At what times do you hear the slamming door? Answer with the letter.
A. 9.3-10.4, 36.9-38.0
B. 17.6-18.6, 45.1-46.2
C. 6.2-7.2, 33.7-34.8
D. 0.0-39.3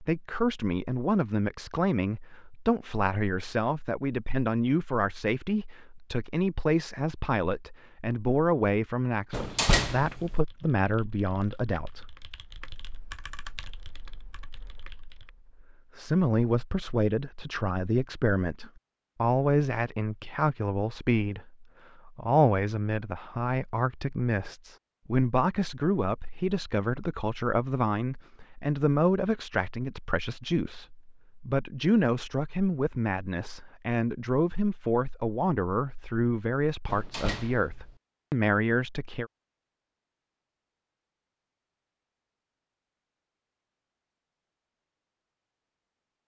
A.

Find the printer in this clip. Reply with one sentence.
The printer can't be heard in this clip.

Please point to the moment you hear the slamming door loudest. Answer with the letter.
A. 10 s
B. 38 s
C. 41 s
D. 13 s
A.